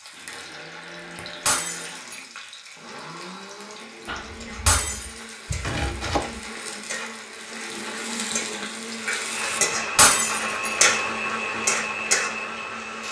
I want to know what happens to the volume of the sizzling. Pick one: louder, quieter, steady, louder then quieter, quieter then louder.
louder.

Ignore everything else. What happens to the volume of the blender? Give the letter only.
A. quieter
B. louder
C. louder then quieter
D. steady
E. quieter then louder
B.